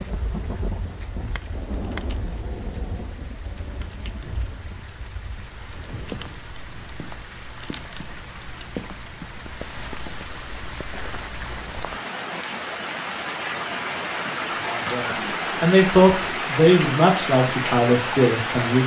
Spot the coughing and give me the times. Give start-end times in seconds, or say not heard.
not heard.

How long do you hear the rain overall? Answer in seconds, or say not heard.
19 s.